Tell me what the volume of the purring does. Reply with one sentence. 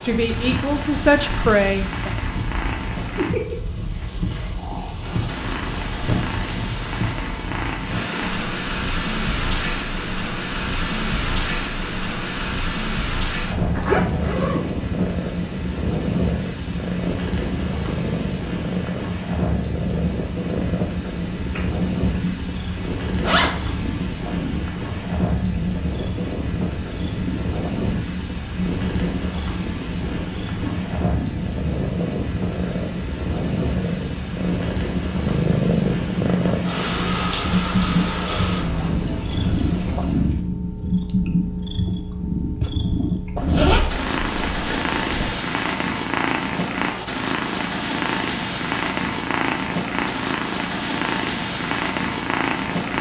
The volume of the purring goes up.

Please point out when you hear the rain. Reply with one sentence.
The rain can be heard from 0.0 to 40.5 s.